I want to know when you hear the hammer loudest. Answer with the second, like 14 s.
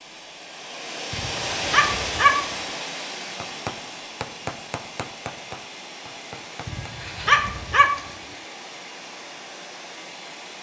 4 s.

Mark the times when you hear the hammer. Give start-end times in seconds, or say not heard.
3.4-6.9.